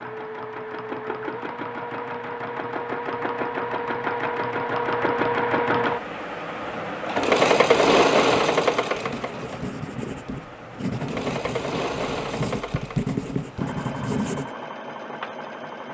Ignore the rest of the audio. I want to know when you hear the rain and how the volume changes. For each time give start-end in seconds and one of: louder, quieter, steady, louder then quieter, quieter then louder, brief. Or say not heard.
not heard.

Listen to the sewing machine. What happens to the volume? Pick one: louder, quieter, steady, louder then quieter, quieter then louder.
louder then quieter.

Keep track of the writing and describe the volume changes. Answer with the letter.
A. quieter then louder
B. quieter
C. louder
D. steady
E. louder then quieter
C.